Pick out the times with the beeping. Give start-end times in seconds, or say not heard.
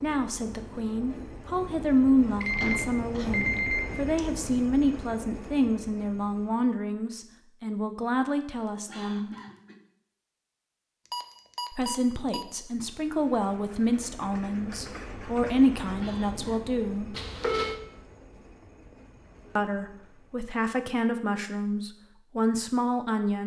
2.4-4.2, 11.1-12.4, 17.1-17.8.